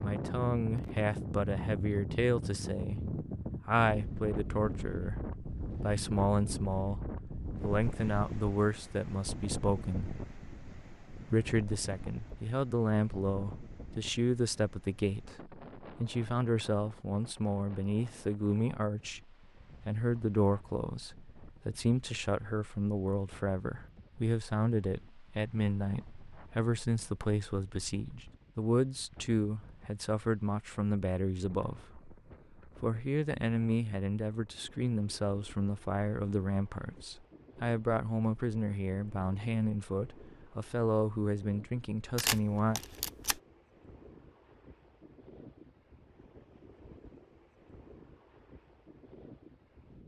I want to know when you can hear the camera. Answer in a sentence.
The camera can be heard from 42.1 to 43.4 s.